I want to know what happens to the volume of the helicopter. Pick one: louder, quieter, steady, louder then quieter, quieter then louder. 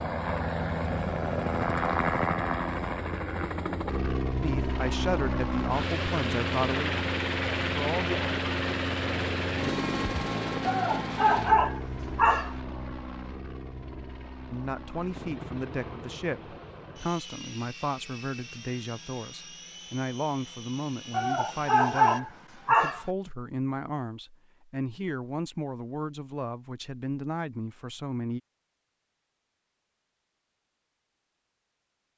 quieter.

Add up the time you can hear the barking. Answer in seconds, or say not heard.
4 s.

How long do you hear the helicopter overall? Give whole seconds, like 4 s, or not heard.
22 s.